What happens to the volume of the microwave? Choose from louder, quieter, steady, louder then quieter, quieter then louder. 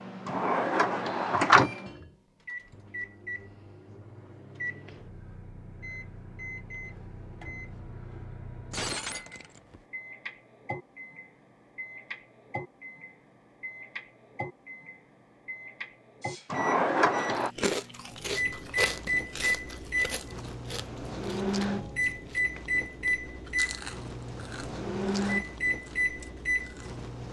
louder.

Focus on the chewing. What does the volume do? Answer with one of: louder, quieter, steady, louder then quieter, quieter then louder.
quieter.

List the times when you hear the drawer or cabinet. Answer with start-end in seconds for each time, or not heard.
0.2-1.7, 16.5-17.5.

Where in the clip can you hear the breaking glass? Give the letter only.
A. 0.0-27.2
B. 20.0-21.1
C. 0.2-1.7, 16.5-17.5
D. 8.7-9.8
D.